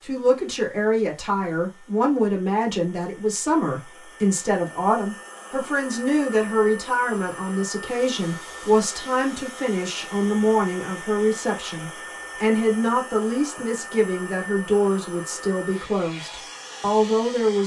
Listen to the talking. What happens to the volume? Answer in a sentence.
The volume of the talking stays about the same.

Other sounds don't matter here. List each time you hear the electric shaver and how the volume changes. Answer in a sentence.
You can't hear the electric shaver here.